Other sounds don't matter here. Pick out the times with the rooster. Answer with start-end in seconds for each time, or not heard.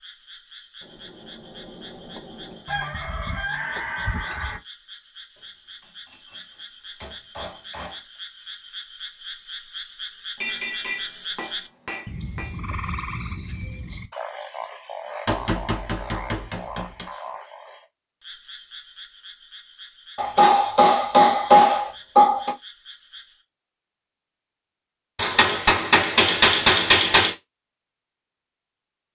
2.6-4.6.